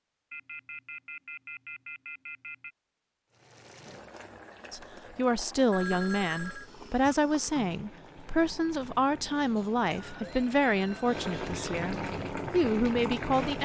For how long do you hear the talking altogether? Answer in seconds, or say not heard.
9 s.